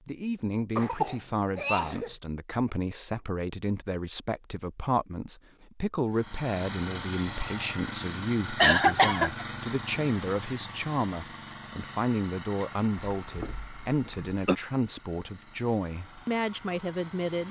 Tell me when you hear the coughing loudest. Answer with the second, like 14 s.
9 s.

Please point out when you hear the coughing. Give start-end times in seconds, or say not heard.
0.8-2.1, 8.6-9.4, 12.9-14.6.